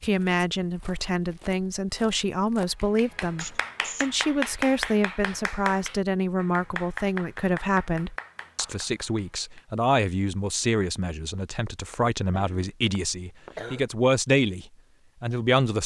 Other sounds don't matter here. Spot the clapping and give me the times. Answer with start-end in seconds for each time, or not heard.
2.6-9.6.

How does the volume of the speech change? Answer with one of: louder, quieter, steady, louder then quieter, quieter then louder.
steady.